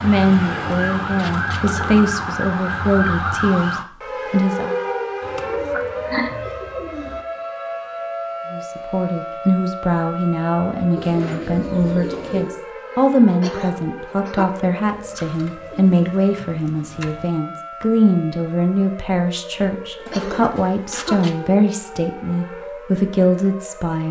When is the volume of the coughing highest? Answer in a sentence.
The loudest moment of the coughing is at 6 seconds.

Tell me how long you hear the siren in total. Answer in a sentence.
The siren can be heard for 24 seconds in total.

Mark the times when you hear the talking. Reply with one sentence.
You can hear the talking from 0.0 to 4.8 s and from 8.5 to 24.0 s.